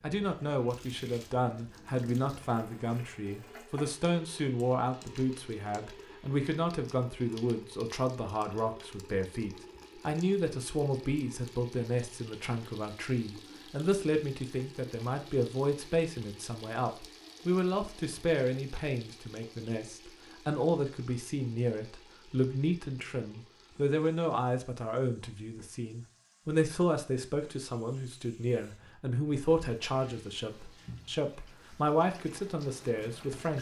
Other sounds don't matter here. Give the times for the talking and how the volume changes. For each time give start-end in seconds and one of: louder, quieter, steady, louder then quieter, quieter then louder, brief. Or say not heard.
0.0-33.5 steady.